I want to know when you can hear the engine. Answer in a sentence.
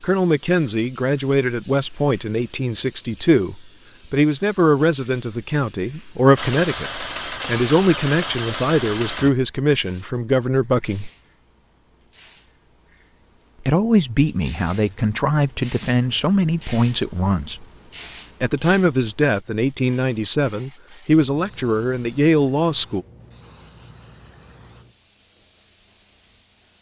The engine can be heard from 6.3 to 9.3 s.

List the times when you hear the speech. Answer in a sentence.
The speech can be heard from 0.0 to 11.1 s, from 13.6 to 17.6 s and from 18.4 to 23.1 s.